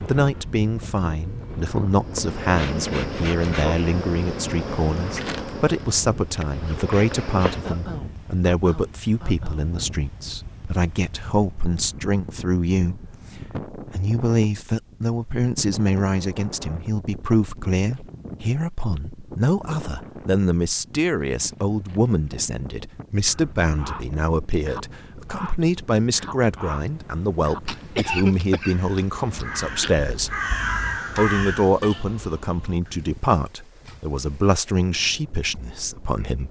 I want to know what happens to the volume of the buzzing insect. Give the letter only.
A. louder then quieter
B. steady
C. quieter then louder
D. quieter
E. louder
C.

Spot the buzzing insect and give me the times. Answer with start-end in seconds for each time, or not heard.
2.0-8.0.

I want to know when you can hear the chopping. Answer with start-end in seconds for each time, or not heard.
not heard.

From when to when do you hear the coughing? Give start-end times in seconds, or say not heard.
7.6-9.8, 27.6-30.1.